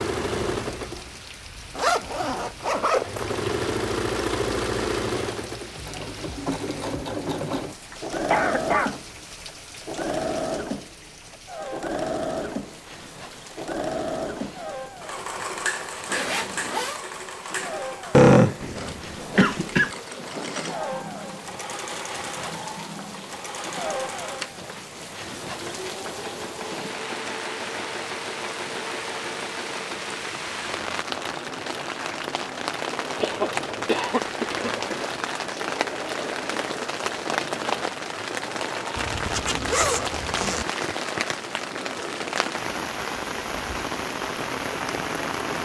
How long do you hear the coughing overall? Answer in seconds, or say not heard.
4 s.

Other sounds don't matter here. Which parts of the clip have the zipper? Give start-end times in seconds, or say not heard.
1.8-3.3, 16.1-17.0, 39.0-40.6.